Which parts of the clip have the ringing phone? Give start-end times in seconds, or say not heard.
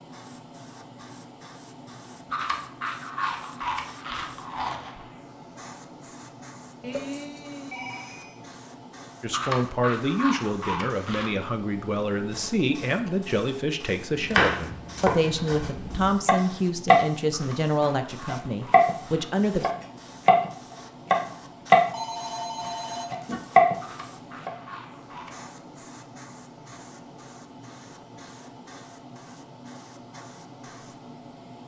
6.8-8.4, 12.3-13.3, 21.9-23.4.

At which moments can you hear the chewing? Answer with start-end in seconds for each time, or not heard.
2.3-5.0, 9.3-11.3, 17.3-19.4, 23.8-25.4.